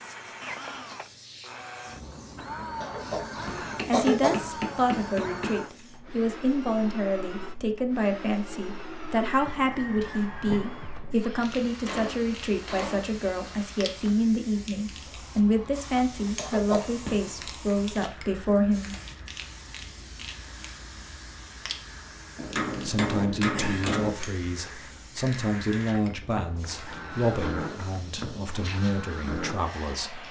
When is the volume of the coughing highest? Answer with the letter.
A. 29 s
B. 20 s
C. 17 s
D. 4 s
D.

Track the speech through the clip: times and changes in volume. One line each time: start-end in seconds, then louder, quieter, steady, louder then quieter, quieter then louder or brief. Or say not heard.
3.9-18.9 steady
22.8-30.2 steady.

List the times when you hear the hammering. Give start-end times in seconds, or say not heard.
3.6-5.6, 11.3-13.6, 22.4-24.1.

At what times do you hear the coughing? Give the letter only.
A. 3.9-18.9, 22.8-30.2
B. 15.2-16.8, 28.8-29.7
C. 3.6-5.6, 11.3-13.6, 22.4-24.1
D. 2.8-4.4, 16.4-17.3
D.